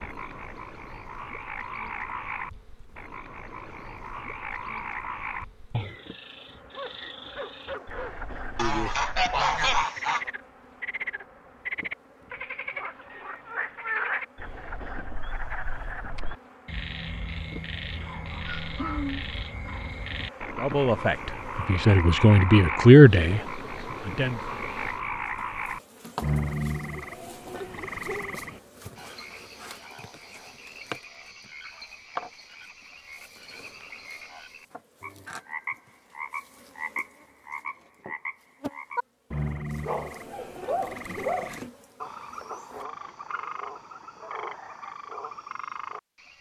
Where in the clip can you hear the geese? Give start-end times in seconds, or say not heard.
8.6-10.3.